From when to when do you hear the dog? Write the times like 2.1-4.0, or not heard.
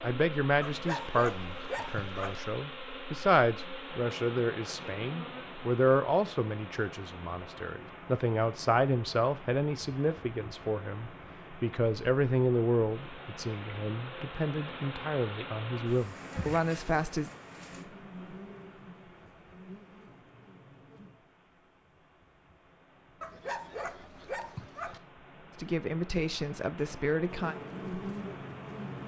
0.6-2.4, 23.2-25.0.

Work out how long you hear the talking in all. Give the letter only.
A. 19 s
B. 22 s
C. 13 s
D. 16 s
A.